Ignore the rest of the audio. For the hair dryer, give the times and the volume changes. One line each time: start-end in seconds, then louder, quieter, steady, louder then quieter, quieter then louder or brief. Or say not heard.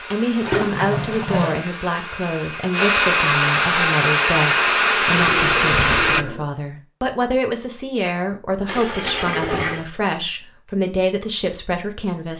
0.0-6.2 louder.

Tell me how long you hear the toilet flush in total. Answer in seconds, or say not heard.
4 s.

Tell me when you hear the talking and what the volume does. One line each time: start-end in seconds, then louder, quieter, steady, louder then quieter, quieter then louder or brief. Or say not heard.
0.0-12.3 steady.